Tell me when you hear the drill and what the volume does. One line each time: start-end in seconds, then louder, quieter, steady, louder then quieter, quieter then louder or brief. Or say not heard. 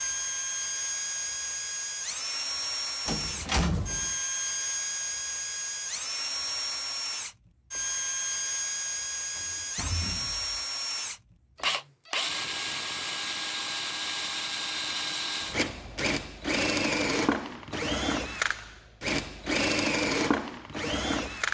0.0-21.4 steady.